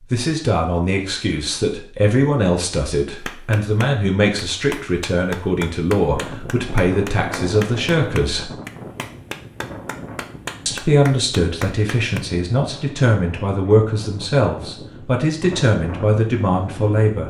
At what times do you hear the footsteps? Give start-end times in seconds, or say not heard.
not heard.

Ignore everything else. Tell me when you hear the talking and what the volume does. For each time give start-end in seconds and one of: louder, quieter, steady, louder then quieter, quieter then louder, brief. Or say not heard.
0.1-8.5 steady
10.7-17.2 steady.